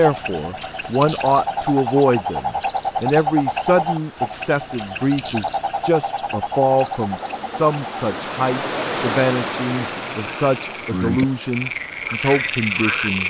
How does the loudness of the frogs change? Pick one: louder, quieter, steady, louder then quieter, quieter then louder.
quieter then louder.